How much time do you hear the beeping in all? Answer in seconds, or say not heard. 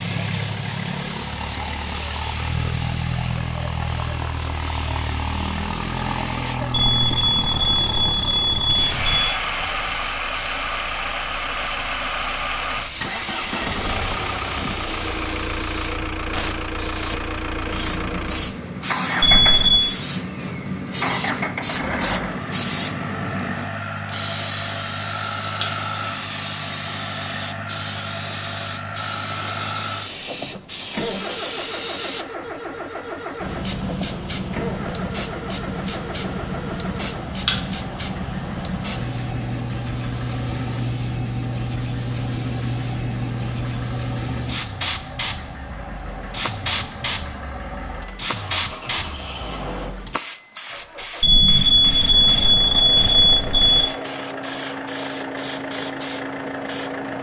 6 s.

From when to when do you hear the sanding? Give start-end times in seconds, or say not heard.
not heard.